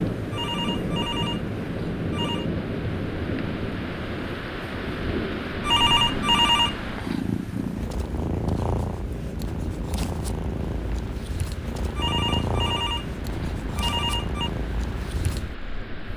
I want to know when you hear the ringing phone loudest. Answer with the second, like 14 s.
6 s.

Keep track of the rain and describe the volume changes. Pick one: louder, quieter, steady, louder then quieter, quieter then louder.
quieter.